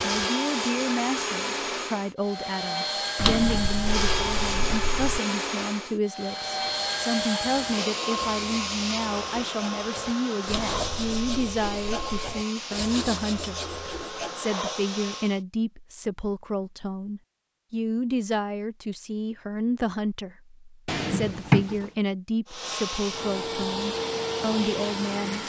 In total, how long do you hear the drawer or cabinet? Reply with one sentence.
You can hear the drawer or cabinet for 5 seconds altogether.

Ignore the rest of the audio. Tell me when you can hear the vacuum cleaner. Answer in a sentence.
The vacuum cleaner can be heard from 0.0 to 15.4 s and from 22.4 to 25.4 s.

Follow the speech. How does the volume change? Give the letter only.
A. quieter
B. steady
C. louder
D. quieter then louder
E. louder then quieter
B.